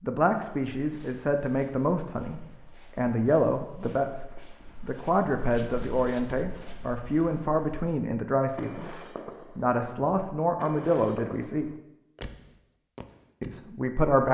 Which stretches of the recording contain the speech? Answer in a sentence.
You can hear the speech from 0.0 to 11.7 s and from 13.4 to 14.2 s.